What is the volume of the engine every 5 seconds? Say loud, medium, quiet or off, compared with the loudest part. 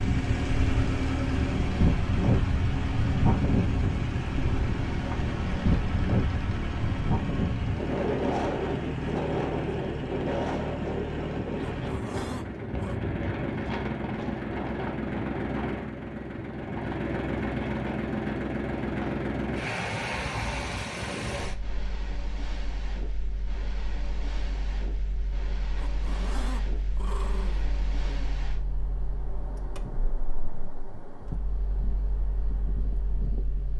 loud, loud, loud, loud, medium, quiet, quiet.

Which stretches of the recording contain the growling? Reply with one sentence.
You can hear the growling from 11.8 to 13.0 s and from 25.8 to 28.4 s.